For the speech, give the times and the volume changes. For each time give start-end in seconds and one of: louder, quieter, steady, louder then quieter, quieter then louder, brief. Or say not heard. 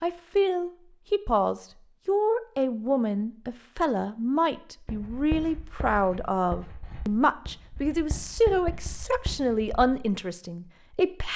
0.0-11.3 steady.